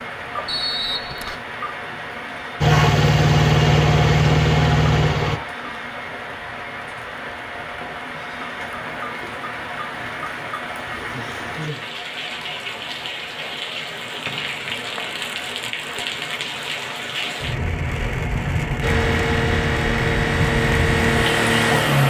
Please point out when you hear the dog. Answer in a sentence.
The dog can't be heard in this clip.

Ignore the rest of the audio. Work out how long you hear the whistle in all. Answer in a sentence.
You can hear the whistle for 2 seconds altogether.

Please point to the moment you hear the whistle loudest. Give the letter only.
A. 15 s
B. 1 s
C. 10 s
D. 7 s
B.